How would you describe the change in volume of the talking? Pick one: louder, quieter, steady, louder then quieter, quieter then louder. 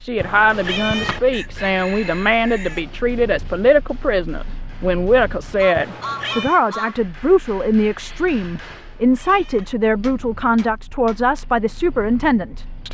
steady.